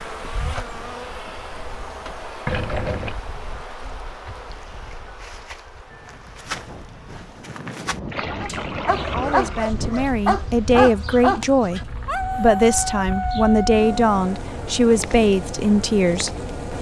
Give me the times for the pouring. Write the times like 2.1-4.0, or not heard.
2.5-3.2, 8.1-9.7, 11.8-13.3.